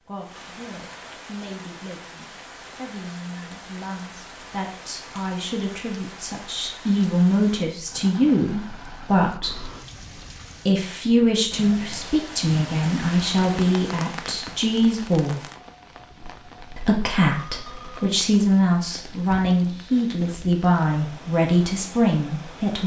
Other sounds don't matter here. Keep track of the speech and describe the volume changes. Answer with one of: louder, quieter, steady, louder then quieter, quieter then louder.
louder.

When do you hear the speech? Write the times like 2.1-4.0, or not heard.
0.1-9.7, 10.7-15.4, 16.8-22.8.